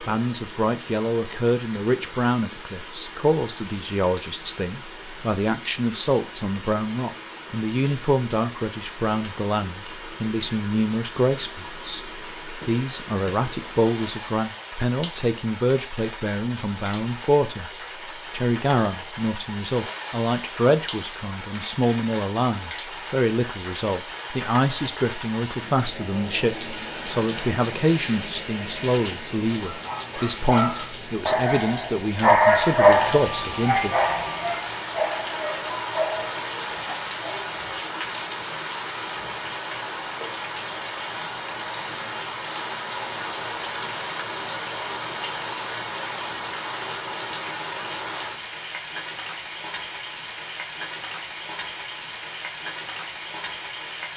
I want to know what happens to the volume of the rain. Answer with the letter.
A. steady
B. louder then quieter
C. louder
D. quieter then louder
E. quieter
C.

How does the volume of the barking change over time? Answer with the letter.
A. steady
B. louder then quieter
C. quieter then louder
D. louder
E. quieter
B.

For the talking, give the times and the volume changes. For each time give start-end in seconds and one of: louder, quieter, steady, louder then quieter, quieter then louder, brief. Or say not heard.
0.0-17.7 steady
18.3-34.0 steady.